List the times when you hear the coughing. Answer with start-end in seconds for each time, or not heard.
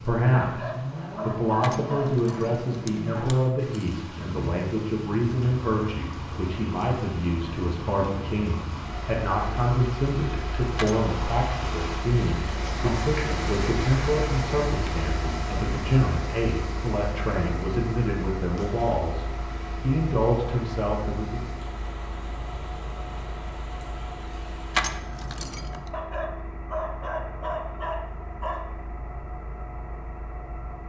not heard.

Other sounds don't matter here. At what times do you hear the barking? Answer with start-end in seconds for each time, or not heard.
0.4-2.4, 25.9-28.6.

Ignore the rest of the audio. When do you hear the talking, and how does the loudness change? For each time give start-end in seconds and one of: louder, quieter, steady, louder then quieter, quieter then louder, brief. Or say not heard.
0.0-21.4 steady.